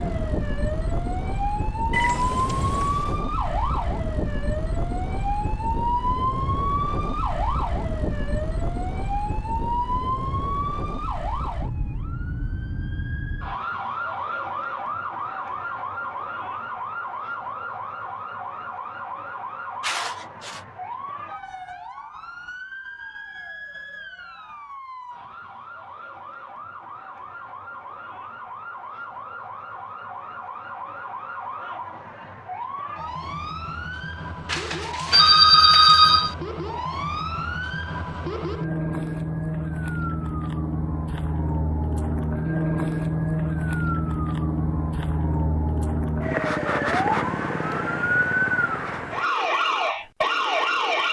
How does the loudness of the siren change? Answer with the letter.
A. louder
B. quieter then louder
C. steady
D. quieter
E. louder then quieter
B.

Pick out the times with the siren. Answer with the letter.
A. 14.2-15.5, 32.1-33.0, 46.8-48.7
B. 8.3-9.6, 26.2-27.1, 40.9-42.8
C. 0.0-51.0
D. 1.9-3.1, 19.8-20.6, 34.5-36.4
C.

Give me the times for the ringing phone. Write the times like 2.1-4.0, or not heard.
1.9-3.1, 19.8-20.6, 34.5-36.4.